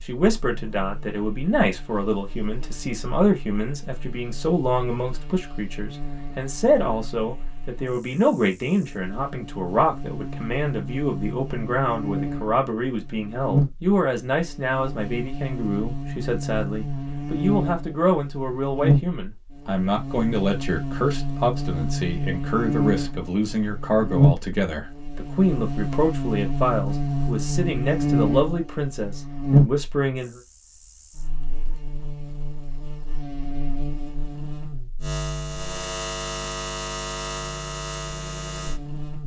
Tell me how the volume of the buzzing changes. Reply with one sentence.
The volume of the buzzing goes up, then down.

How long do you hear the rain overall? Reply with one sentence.
You can't hear the rain here.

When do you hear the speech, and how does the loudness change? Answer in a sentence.
You can hear the speech from 0.0 to 30.4 s, at a steady volume.